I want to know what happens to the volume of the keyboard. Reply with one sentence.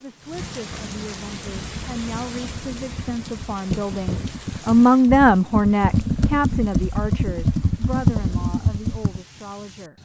The loudness of the keyboard goes up.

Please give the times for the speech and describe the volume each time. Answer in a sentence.
You can hear the speech from 0.0 to 10.0 s, getting louder then quieter.